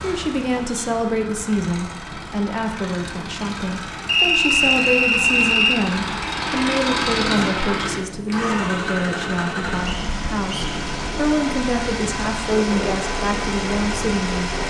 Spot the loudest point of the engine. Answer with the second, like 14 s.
7 s.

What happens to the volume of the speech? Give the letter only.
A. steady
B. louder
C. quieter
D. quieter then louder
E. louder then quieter
A.